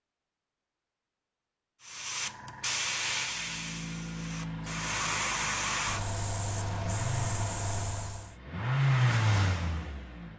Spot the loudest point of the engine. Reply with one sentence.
The loudest moment of the engine is at 9 seconds.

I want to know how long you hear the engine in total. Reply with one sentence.
The engine can be heard for 7 seconds in total.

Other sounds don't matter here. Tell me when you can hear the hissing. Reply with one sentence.
The hissing can be heard from 1.8 to 8.3 s.